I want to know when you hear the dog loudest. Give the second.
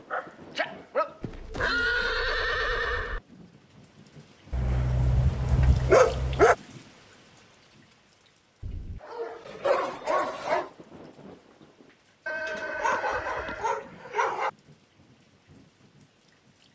6 s.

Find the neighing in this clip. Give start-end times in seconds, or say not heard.
1.2-3.2, 12.2-13.8.